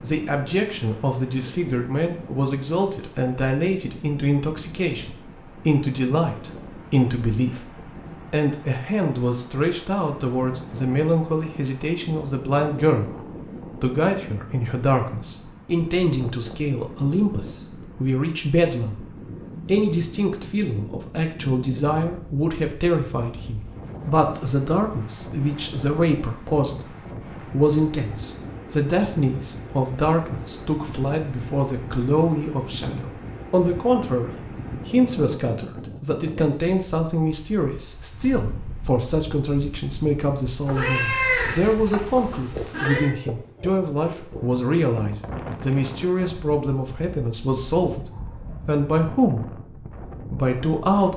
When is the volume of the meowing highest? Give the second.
41 s.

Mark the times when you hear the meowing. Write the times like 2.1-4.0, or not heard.
40.6-43.1.